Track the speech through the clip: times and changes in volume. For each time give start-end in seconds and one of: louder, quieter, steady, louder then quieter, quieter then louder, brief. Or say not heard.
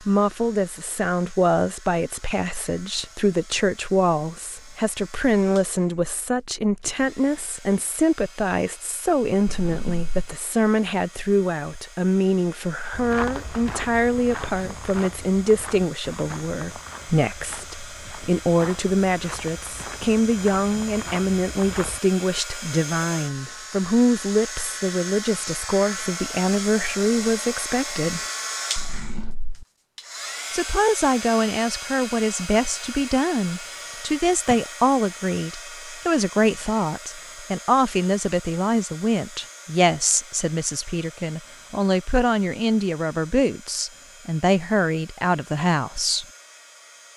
0.0-28.2 steady
30.5-46.2 steady.